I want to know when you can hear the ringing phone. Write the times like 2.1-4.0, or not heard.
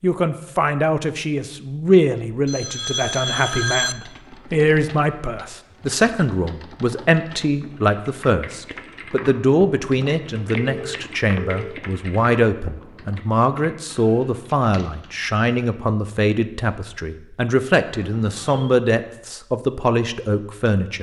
2.5-4.0, 10.7-11.8, 18.1-18.8.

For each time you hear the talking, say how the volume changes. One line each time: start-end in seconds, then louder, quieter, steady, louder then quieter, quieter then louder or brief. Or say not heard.
0.0-20.9 steady.